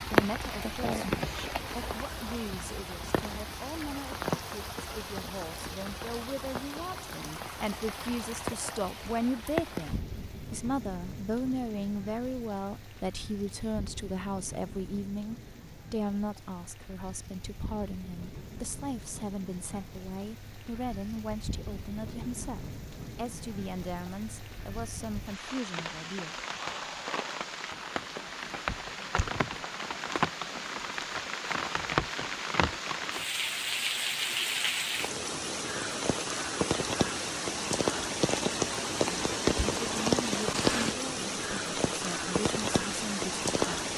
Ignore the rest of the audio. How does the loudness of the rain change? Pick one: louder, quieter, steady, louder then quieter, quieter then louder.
quieter then louder.